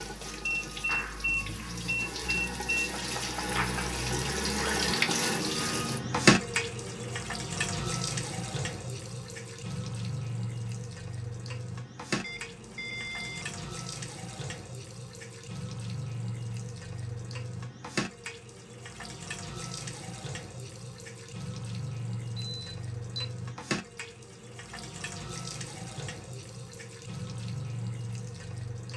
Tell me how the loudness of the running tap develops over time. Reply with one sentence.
The volume of the running tap goes down.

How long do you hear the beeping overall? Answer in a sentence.
You can hear the beeping for 5 seconds altogether.